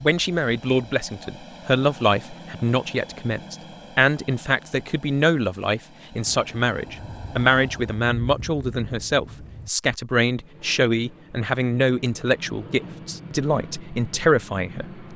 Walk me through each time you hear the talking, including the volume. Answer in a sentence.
The talking can be heard from 0.0 to 15.1 s, at a steady volume.